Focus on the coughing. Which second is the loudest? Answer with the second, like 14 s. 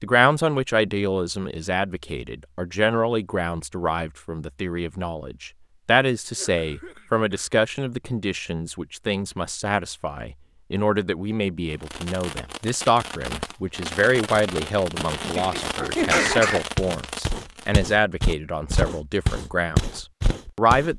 16 s.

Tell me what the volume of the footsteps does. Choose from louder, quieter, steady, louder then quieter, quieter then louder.
louder then quieter.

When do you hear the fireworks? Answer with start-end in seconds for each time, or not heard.
11.7-17.8.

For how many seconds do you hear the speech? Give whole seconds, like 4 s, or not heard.
21 s.